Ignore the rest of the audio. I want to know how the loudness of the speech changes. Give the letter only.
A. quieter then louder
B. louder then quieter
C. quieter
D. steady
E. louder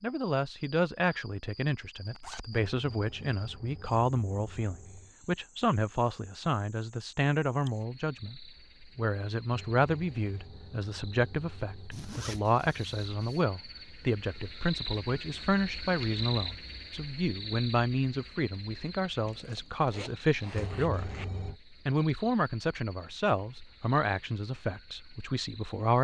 D.